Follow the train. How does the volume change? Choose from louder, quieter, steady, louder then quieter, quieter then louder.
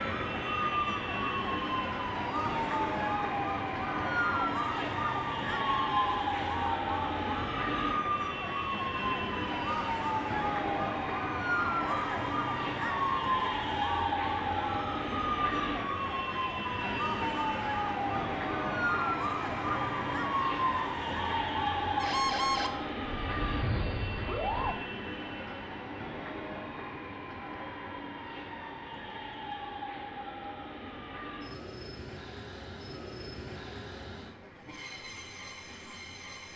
quieter.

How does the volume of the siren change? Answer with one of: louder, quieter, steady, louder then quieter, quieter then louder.
steady.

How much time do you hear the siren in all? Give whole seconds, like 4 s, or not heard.
25 s.